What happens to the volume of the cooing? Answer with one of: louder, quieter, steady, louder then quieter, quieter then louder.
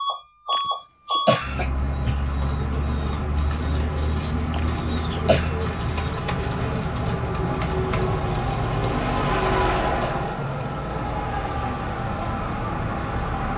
steady.